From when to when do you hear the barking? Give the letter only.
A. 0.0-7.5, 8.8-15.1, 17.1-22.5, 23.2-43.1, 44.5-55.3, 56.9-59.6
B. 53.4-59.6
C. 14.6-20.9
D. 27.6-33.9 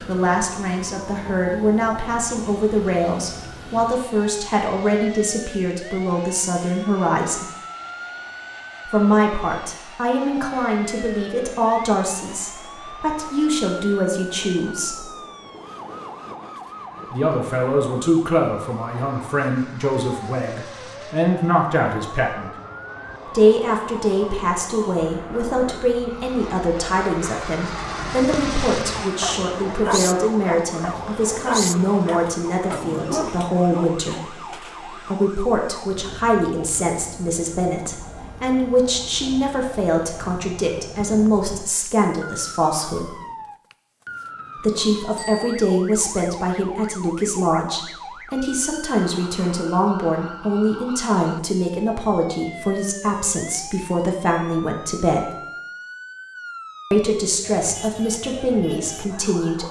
D.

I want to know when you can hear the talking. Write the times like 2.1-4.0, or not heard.
0.0-7.5, 8.8-15.1, 17.1-22.5, 23.2-43.1, 44.5-55.3, 56.9-59.6.